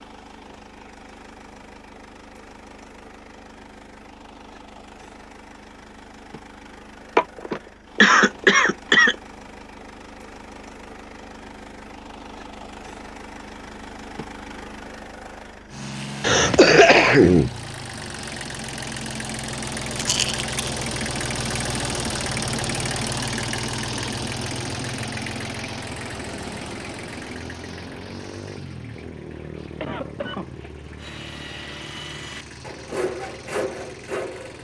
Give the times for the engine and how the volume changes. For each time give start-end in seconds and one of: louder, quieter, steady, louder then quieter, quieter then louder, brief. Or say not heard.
0.0-34.5 louder then quieter.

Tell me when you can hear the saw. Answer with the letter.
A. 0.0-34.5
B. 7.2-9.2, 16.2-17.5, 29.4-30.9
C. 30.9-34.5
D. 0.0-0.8
C.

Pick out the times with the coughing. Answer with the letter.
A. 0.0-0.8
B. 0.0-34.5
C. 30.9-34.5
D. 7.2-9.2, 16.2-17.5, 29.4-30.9
D.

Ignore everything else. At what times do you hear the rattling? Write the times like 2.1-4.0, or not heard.
19.9-20.7.